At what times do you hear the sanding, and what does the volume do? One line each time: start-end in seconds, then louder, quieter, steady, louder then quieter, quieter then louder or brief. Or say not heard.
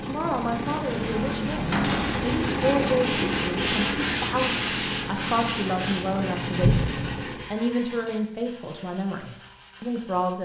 0.5-10.3 louder then quieter.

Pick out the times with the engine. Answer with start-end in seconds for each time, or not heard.
0.0-7.5.